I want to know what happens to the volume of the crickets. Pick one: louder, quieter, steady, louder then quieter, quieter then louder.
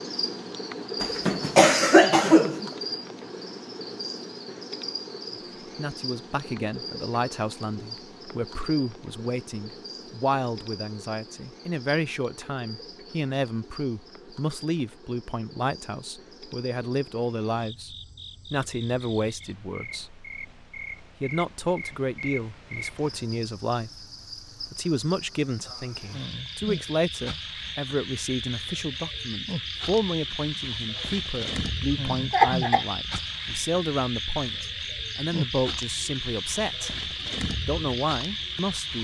quieter then louder.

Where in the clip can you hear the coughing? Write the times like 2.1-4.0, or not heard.
1.0-2.7, 32.3-32.9.